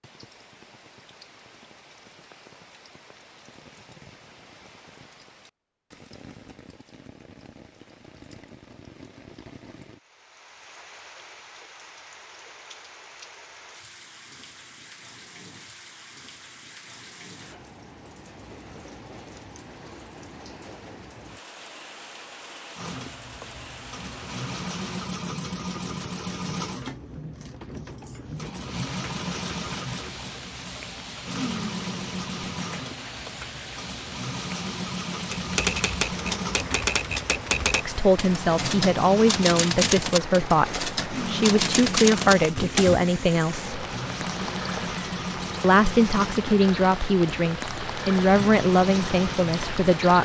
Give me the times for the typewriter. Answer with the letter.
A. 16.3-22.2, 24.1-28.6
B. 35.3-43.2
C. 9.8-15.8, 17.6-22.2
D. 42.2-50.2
B.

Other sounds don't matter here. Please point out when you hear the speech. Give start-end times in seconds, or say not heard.
37.9-43.8, 45.6-50.2.